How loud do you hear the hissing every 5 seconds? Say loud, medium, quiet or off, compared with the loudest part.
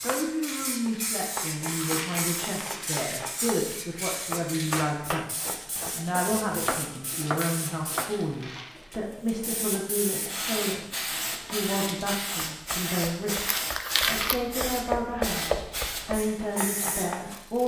loud, medium, loud, loud.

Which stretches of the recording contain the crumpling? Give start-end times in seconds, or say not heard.
1.6-3.0, 7.3-8.9, 13.3-14.4.